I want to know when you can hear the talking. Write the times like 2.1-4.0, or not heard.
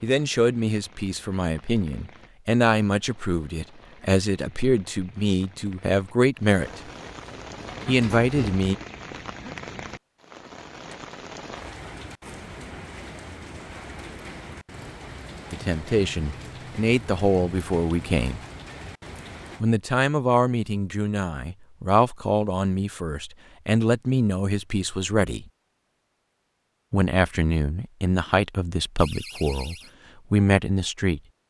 0.0-6.8, 7.8-8.8, 15.5-18.4, 19.6-25.4, 26.9-31.2.